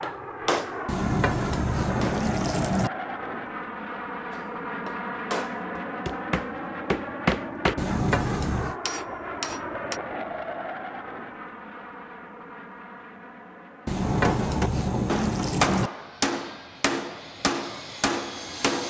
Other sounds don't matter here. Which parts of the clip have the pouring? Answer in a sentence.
You can hear the pouring from 0.8 to 2.9 s, from 7.8 to 8.8 s and from 13.8 to 15.9 s.